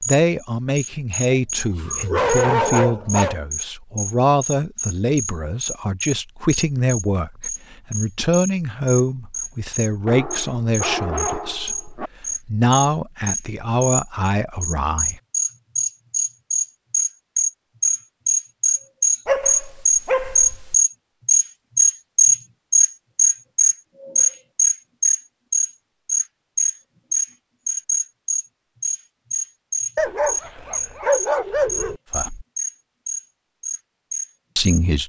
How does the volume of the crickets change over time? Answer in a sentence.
The volume of the crickets goes up, then down.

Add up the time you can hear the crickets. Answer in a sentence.
The crickets can be heard for 35 seconds in total.